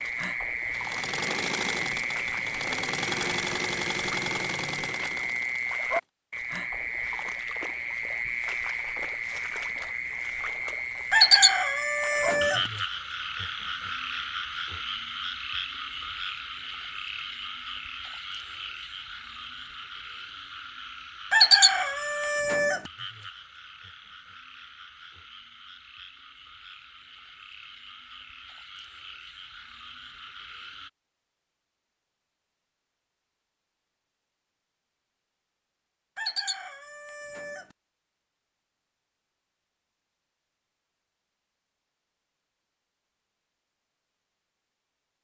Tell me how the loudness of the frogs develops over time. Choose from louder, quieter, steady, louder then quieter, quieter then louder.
quieter.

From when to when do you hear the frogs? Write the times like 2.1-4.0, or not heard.
0.0-30.9.